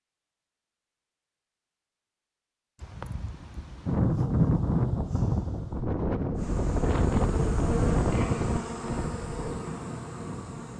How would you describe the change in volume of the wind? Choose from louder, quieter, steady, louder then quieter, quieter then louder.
quieter.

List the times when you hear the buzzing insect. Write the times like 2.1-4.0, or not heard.
6.3-10.7.